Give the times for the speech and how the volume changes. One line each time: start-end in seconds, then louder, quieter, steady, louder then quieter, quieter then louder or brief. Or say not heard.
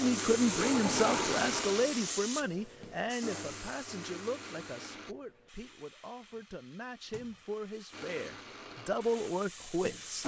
0.0-10.2 quieter then louder.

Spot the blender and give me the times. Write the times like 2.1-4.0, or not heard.
0.0-5.2, 7.9-10.2.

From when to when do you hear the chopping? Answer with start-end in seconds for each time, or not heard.
not heard.